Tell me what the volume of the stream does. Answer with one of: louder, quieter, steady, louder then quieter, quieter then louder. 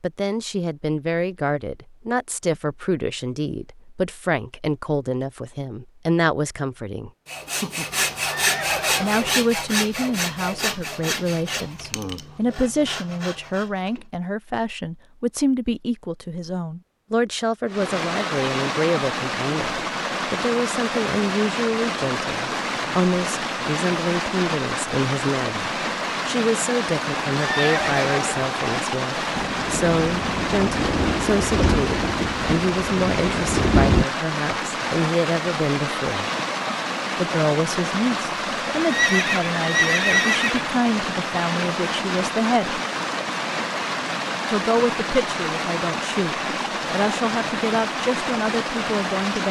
steady.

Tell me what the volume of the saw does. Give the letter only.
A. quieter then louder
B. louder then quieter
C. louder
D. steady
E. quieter
E.